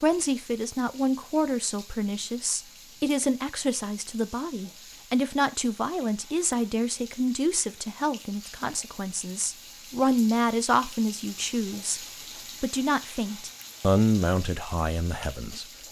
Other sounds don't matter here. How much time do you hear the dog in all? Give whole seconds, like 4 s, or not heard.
not heard.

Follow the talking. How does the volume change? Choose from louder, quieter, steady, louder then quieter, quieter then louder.
steady.